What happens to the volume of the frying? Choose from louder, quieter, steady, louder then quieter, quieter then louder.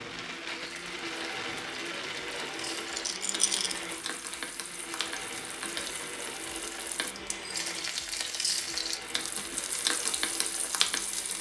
louder.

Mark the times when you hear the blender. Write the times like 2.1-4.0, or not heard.
0.0-11.3.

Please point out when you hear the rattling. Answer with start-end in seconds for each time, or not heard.
2.9-3.8.